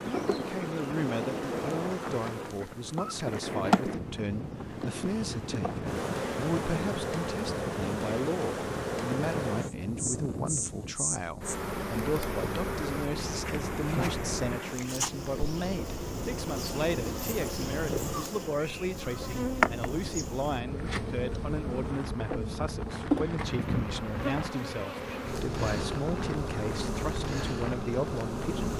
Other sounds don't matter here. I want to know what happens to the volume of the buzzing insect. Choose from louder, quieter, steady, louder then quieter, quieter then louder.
steady.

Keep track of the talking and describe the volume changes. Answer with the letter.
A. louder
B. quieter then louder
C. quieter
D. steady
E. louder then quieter
D.